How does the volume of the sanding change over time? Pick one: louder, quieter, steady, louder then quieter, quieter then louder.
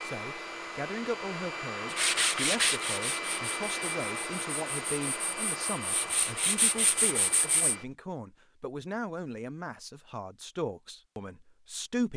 quieter then louder.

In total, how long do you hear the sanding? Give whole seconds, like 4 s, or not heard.
6 s.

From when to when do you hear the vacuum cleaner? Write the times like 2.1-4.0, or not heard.
0.0-8.0.